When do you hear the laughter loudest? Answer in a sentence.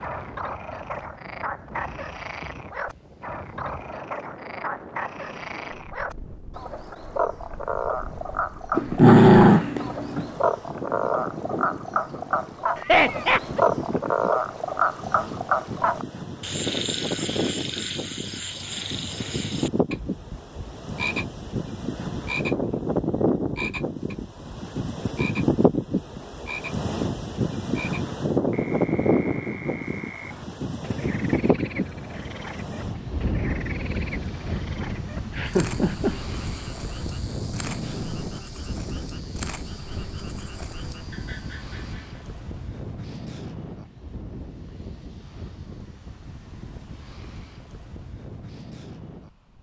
The volume of the laughter peaks at 13 seconds.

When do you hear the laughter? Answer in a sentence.
The laughter can be heard from 12.8 to 13.6 s and from 35.2 to 36.2 s.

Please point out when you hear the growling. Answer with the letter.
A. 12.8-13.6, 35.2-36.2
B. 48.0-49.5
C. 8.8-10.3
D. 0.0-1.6
C.